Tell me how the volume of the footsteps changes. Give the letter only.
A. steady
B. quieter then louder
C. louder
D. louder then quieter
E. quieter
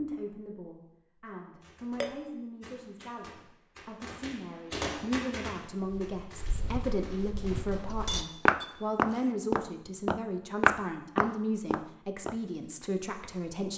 D.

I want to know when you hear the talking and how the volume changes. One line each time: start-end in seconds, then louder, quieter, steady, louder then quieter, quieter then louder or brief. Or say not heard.
0.0-13.7 louder.